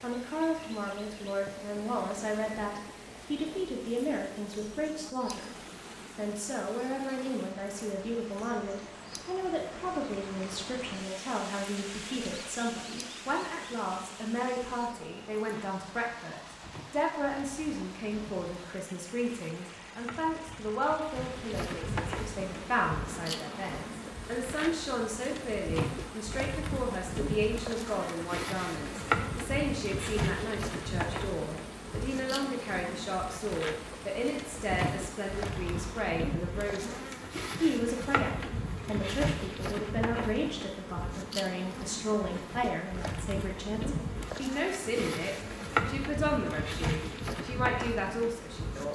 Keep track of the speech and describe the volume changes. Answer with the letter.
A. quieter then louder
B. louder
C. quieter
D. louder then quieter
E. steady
E.